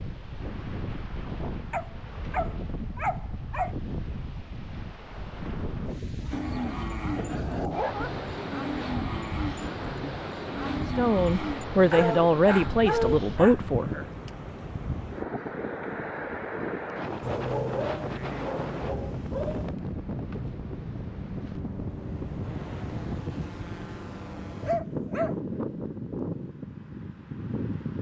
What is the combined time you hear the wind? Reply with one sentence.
The wind can be heard for 28 seconds in total.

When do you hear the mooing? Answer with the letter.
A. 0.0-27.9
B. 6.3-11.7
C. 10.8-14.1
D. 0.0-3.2
B.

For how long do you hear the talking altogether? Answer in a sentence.
The talking can be heard for 3 seconds in total.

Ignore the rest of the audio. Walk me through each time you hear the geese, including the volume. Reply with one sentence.
The geese can't be heard in this clip.